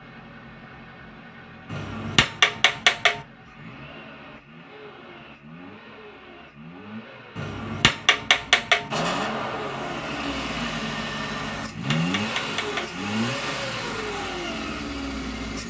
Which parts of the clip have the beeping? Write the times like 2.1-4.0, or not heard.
not heard.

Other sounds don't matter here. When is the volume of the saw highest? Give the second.
9 s.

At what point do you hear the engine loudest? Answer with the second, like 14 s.
12 s.